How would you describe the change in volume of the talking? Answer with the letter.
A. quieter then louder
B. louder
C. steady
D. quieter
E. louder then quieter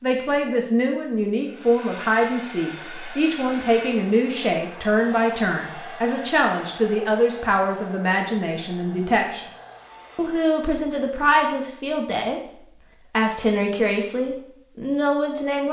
C.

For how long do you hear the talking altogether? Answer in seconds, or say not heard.
15 s.